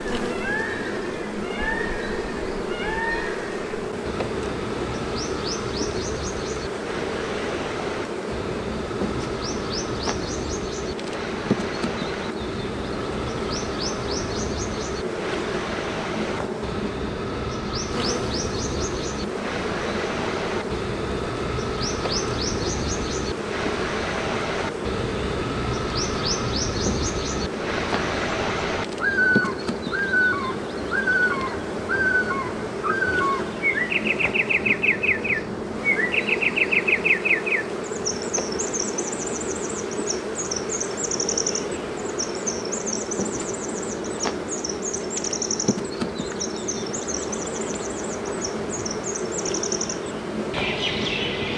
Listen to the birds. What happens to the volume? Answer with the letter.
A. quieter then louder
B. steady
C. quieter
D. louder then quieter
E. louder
D.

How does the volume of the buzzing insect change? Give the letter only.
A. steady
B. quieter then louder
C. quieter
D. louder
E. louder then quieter
A.